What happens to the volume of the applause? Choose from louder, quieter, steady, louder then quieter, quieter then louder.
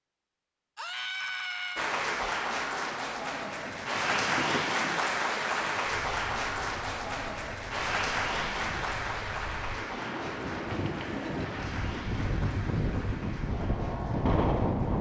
quieter.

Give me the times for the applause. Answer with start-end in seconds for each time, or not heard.
1.8-14.9.